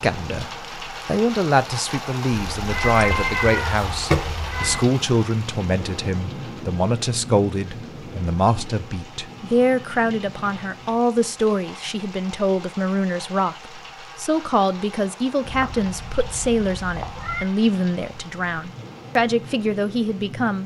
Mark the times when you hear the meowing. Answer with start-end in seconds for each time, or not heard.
2.5-4.8, 15.4-17.4.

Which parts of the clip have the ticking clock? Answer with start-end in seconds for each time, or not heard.
not heard.